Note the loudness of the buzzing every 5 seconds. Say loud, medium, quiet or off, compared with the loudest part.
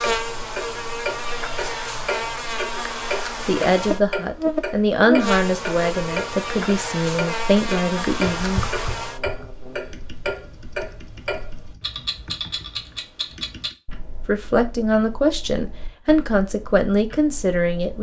loud, loud, off, off.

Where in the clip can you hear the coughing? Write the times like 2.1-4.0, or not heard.
not heard.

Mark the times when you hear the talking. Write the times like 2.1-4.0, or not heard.
3.5-8.7, 14.2-17.9.